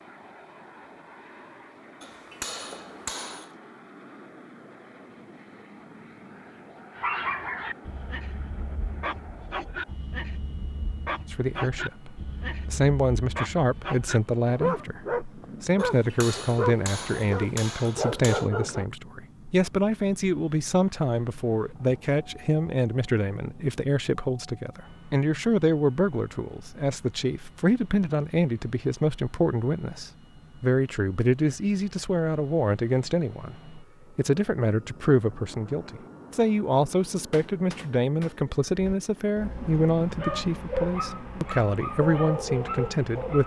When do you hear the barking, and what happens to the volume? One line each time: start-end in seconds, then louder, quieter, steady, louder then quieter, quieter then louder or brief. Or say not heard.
7.0-18.9 louder
38.8-43.4 louder.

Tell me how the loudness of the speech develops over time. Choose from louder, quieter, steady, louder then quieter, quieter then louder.
steady.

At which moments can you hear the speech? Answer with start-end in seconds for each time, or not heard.
11.3-43.4.